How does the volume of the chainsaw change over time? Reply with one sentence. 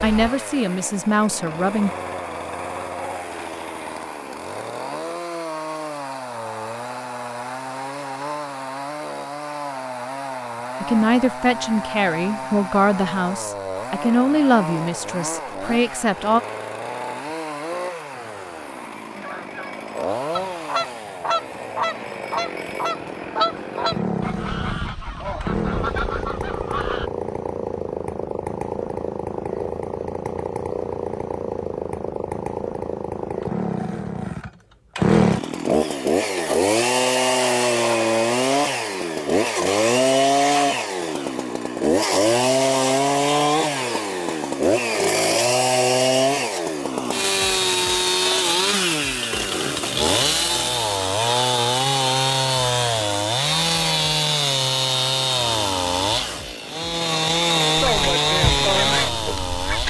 The loudness of the chainsaw goes up.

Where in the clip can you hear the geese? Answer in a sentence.
The geese can be heard from 18.1 to 27.1 s and from 57.8 to 59.8 s.